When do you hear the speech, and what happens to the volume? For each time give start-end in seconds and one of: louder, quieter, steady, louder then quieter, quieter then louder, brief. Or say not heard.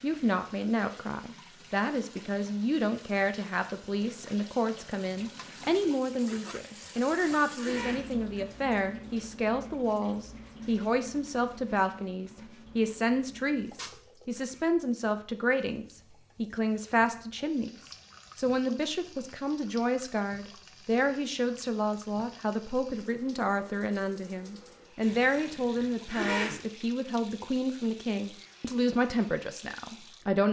0.0-30.4 steady.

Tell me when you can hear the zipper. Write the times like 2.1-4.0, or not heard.
6.5-8.1, 25.0-26.6.